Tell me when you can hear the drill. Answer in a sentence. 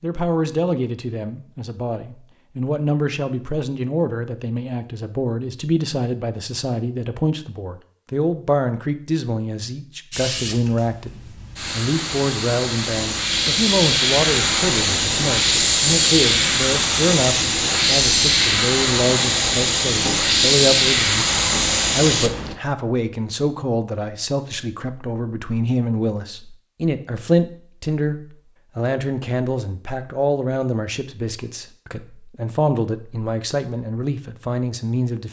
The drill can't be heard in this clip.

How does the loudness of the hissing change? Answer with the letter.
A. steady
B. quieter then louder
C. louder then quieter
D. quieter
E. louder
E.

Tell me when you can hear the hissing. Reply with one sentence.
The hissing can be heard from 10.1 to 22.6 s.